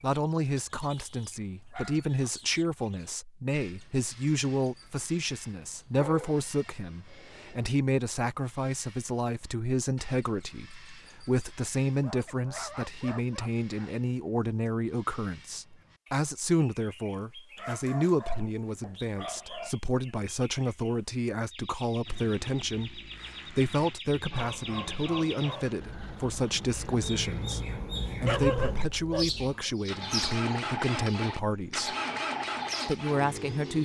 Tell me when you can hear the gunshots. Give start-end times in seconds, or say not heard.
not heard.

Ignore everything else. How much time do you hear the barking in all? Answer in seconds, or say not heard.
10 s.